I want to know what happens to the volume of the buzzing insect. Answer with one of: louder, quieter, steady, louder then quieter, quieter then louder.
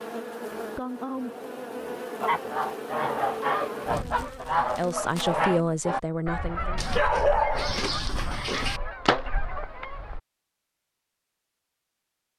quieter.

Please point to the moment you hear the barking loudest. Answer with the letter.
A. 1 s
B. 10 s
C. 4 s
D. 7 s
D.